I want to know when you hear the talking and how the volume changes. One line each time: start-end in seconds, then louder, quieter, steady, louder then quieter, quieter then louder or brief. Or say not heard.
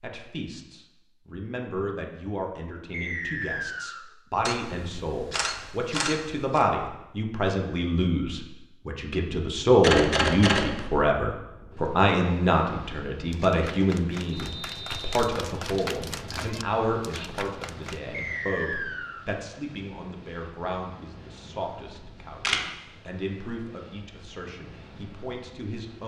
0.0-26.0 louder then quieter.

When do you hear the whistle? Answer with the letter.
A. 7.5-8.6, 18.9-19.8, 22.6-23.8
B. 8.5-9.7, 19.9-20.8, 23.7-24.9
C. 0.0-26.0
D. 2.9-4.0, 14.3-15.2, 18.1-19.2
D.